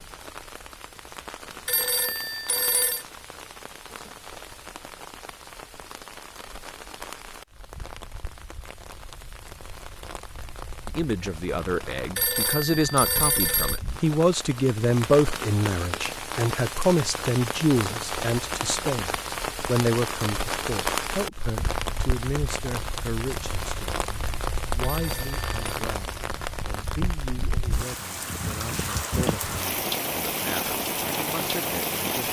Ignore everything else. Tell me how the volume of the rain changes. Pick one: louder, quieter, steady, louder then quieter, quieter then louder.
louder.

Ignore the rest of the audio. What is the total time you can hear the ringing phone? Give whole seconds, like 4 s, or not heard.
4 s.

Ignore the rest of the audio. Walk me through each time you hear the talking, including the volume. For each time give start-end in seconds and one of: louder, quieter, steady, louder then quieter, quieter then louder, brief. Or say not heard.
10.8-32.2 quieter.